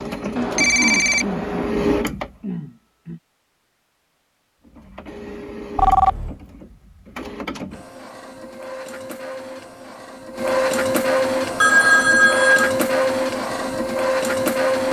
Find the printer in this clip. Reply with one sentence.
The printer can be heard from 0.0 to 2.4 s and from 4.7 to 14.8 s.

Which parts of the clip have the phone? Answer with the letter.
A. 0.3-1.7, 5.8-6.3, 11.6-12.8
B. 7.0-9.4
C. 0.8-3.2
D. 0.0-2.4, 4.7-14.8
A.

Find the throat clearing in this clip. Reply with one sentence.
You can hear the throat clearing from 0.8 to 3.2 s.